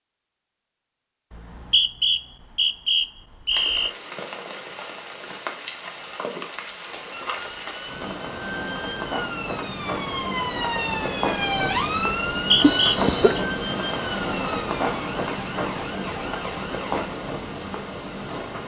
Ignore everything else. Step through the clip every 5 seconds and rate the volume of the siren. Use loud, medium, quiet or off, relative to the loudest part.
off, medium, loud, medium.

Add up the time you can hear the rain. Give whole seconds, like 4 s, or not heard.
15 s.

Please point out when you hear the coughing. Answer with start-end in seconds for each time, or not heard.
12.6-13.4.